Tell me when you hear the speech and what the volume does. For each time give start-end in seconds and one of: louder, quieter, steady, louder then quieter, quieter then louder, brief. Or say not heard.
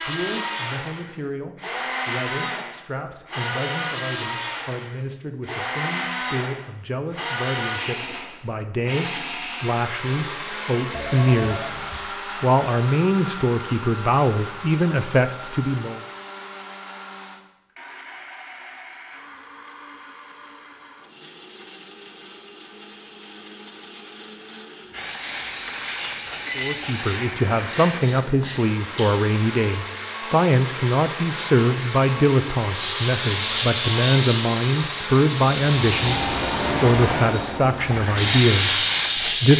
0.0-16.0 louder
26.6-39.5 steady.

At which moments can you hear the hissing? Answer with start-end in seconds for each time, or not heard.
24.9-39.5.